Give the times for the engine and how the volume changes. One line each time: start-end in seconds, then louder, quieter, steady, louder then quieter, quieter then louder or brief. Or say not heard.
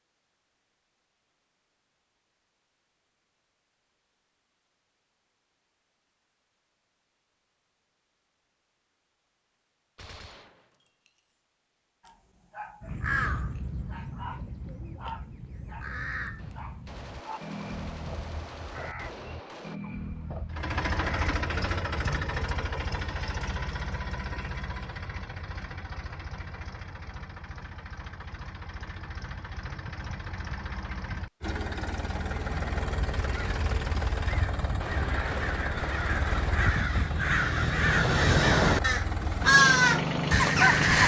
20.5-41.0 quieter then louder.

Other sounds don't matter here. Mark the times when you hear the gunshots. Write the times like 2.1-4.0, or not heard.
9.9-11.4, 16.4-19.8, 34.8-36.9.